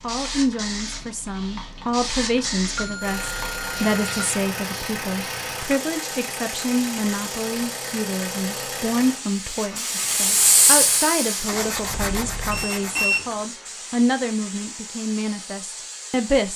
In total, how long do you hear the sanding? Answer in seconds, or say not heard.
2 s.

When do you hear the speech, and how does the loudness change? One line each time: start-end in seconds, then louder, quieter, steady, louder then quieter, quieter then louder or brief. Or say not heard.
0.0-16.5 steady.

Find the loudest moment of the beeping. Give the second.
13 s.